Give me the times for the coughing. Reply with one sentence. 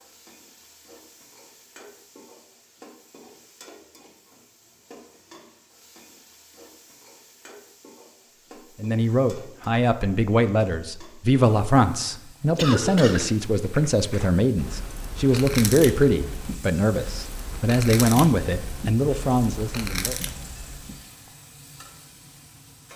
The coughing can be heard from 12.6 to 13.4 s.